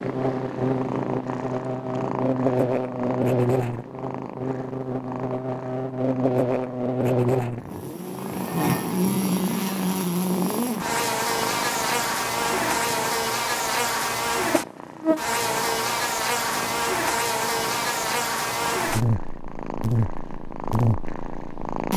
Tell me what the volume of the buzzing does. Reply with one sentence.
The loudness of the buzzing stays about the same.